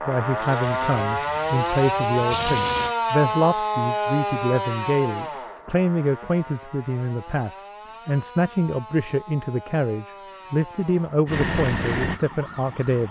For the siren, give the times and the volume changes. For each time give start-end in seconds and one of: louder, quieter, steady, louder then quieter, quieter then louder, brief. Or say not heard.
0.0-13.0 quieter.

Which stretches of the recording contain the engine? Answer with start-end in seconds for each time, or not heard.
0.0-3.0, 11.2-13.0.